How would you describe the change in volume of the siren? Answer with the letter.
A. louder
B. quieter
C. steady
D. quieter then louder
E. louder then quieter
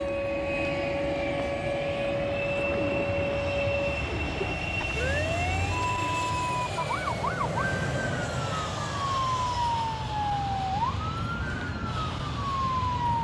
C.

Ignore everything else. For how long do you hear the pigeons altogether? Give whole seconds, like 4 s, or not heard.
2 s.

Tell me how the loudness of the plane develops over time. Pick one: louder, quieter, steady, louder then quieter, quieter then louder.
steady.